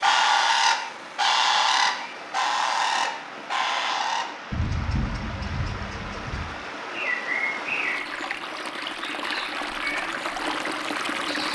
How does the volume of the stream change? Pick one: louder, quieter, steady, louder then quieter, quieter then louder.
louder.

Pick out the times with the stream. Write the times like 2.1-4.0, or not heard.
0.2-11.5.